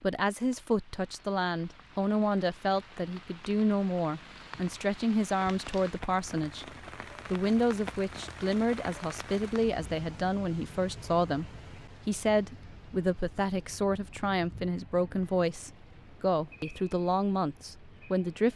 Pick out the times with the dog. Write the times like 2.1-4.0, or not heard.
not heard.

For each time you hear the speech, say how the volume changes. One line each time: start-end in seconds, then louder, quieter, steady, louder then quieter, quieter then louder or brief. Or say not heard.
0.0-6.7 steady
7.2-18.5 steady.